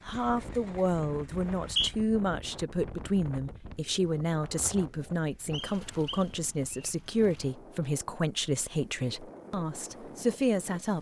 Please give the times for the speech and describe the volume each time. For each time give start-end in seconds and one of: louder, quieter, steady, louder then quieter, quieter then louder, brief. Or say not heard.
0.1-10.9 steady.